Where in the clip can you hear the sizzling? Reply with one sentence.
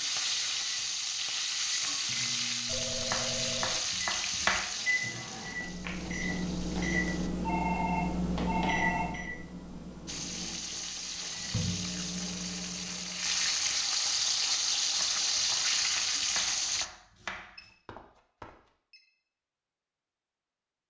You can hear the sizzling from 0.0 to 7.3 s and from 10.1 to 16.9 s.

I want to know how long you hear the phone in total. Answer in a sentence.
The phone can be heard for 4 seconds in total.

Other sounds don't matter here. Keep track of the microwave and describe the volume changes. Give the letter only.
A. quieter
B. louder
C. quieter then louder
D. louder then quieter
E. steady
D.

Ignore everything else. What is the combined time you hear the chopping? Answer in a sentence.
The chopping can be heard for 4 seconds in total.